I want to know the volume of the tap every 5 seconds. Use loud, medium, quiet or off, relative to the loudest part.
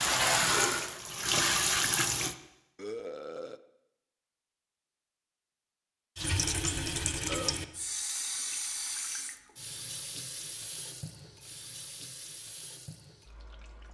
loud, medium, quiet.